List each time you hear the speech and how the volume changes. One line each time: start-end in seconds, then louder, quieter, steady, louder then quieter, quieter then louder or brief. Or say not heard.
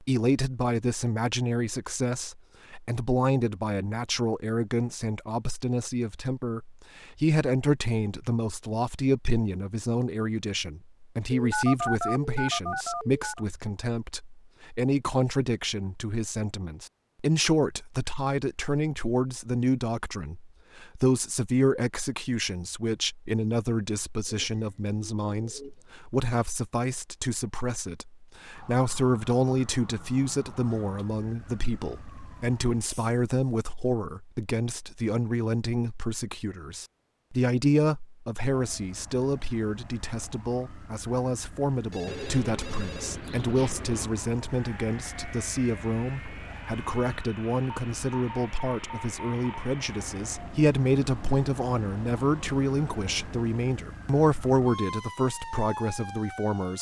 0.0-56.7 steady.